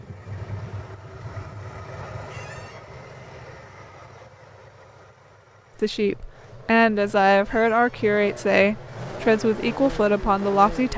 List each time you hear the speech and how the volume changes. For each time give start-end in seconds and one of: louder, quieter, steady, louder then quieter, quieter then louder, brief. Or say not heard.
5.8-10.9 steady.